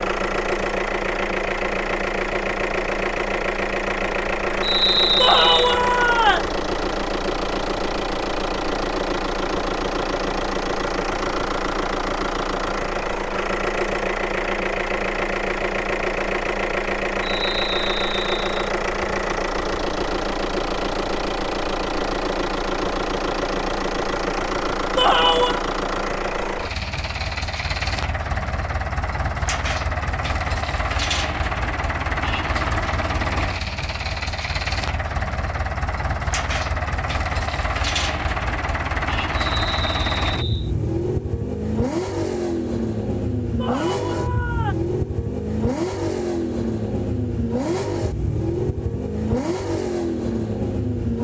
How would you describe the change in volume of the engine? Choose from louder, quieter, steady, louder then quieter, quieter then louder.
steady.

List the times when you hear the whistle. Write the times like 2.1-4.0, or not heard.
4.6-5.8, 17.2-18.7, 39.4-40.7.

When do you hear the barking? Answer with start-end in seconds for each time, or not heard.
not heard.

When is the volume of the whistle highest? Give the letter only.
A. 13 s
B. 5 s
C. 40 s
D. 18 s
B.